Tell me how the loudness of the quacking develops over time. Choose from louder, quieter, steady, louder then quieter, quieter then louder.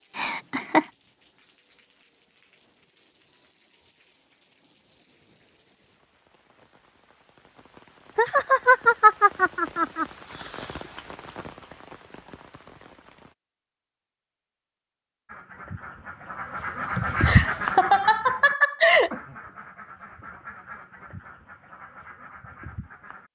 louder then quieter.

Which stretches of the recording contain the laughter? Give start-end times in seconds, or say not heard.
0.1-0.8, 8.2-10.1, 16.9-19.1.